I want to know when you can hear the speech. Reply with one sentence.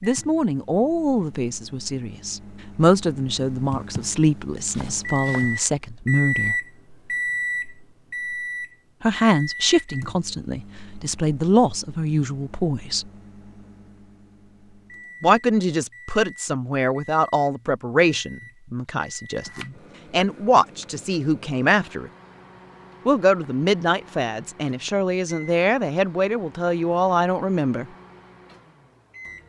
The speech can be heard from 0.0 to 6.5 s, from 9.0 to 13.1 s, from 15.2 to 22.1 s and from 23.1 to 27.9 s.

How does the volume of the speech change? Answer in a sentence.
The loudness of the speech stays about the same.